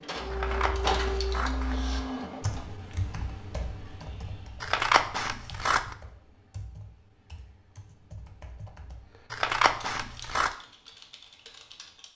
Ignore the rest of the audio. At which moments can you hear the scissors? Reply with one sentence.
The scissors can be heard from 0.3 to 1.8 s, from 4.6 to 6.0 s and from 9.3 to 10.5 s.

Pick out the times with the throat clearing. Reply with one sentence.
You can't hear the throat clearing here.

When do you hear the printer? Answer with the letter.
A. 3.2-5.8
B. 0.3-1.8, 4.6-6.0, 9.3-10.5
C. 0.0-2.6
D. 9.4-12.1
C.